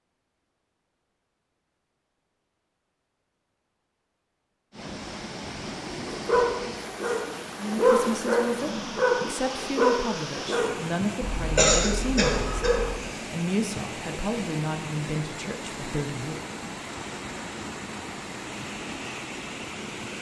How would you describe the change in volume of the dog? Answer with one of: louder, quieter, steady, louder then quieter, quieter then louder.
louder then quieter.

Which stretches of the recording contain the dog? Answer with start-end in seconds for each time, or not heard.
6.0-12.9.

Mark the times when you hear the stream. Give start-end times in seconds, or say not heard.
4.7-20.1.